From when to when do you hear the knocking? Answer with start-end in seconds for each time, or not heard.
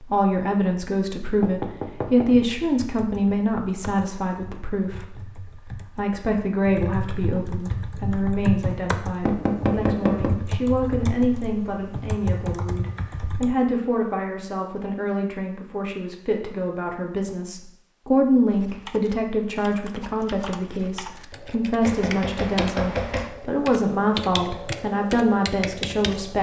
1.4-2.5, 9.2-10.3, 21.8-23.3.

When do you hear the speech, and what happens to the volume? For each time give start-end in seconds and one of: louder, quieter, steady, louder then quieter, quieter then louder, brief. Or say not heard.
0.0-26.3 steady.